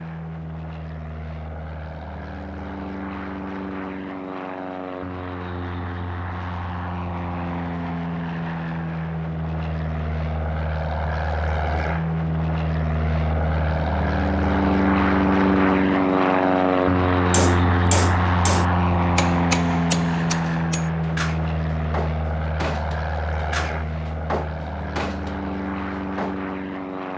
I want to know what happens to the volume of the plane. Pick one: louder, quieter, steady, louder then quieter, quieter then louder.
louder then quieter.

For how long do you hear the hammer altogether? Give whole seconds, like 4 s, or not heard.
9 s.